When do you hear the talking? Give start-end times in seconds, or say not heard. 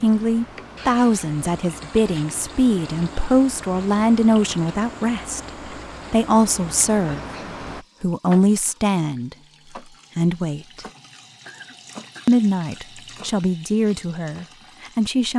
0.0-5.4, 6.1-7.2, 8.0-9.3, 10.2-10.8, 12.2-15.3.